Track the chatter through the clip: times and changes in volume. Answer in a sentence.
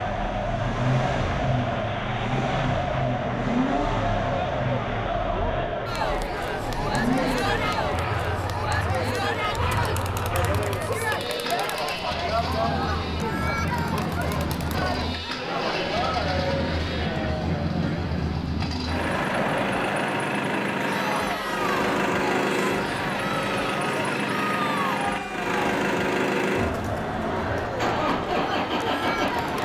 You can hear the chatter from 0.0 to 29.6 s, at a steady volume.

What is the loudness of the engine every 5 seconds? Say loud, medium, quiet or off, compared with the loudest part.
loud, medium, medium, loud, loud, loud.